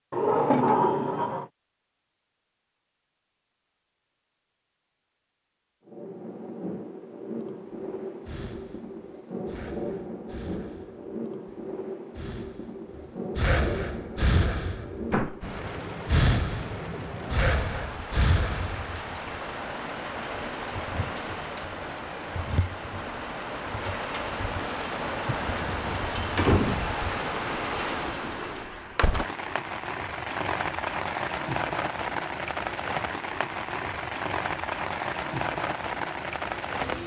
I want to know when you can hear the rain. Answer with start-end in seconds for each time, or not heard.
5.8-37.0.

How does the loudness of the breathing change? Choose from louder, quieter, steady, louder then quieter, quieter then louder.
louder.